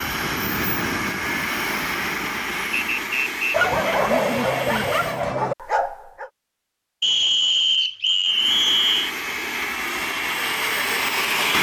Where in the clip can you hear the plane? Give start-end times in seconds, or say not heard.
0.0-5.2, 8.2-11.5.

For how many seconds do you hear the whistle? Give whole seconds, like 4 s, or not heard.
3 s.